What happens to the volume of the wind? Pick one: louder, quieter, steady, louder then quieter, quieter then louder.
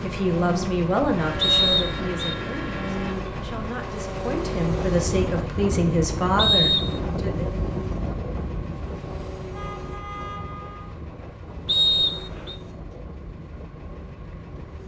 quieter.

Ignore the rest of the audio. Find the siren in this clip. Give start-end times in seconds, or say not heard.
not heard.